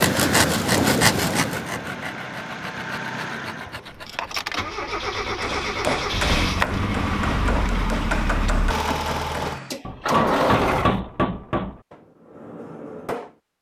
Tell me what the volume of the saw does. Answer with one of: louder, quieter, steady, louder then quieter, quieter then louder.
quieter.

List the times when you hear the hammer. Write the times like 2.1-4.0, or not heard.
5.4-13.3.